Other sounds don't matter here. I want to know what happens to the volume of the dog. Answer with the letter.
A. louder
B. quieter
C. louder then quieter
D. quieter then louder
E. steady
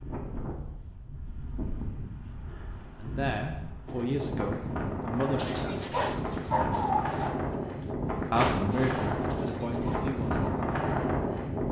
B.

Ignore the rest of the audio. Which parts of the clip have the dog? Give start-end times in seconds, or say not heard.
5.3-10.7.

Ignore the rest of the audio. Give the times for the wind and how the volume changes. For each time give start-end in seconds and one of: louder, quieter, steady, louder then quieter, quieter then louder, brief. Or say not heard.
0.0-11.6 louder.